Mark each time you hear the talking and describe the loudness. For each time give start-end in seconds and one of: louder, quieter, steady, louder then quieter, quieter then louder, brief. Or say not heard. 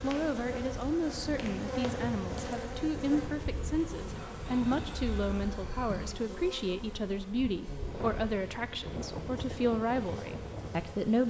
0.0-11.2 steady.